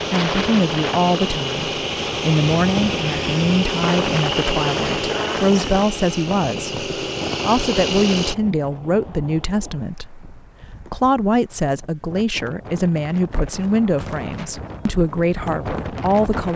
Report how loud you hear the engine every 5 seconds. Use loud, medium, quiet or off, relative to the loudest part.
loud, loud, off, off.